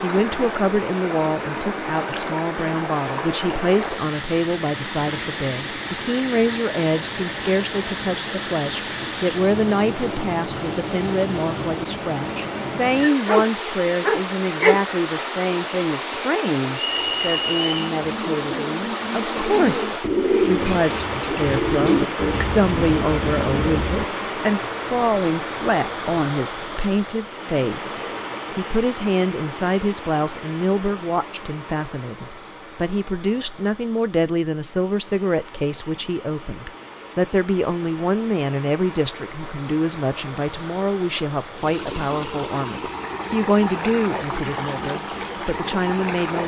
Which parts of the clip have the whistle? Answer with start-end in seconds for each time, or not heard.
16.8-17.9.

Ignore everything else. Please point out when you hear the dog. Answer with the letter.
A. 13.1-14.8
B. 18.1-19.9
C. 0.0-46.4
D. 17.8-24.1
A.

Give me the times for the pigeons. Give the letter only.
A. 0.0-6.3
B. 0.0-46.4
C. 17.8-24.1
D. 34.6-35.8
C.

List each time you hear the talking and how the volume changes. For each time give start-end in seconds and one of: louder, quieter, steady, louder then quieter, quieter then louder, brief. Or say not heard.
0.0-46.4 steady.